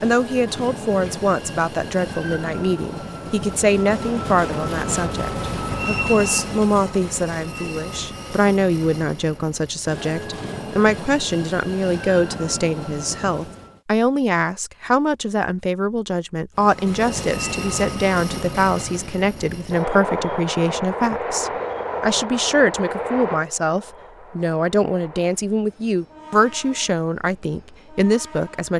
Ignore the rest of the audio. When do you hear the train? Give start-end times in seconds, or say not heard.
0.0-13.8, 16.6-28.7.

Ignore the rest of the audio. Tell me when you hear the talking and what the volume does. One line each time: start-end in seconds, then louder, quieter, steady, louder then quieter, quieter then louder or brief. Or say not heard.
0.0-28.7 steady.